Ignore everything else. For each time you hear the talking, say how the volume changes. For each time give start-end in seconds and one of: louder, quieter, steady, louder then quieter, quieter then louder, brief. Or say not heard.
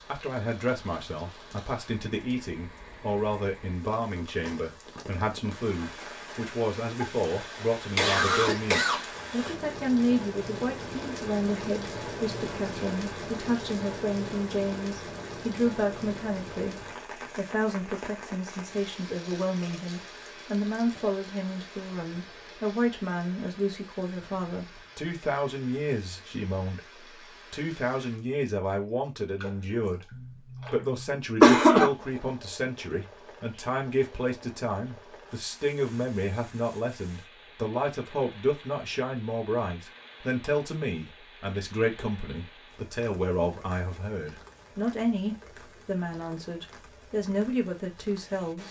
0.1-48.6 steady.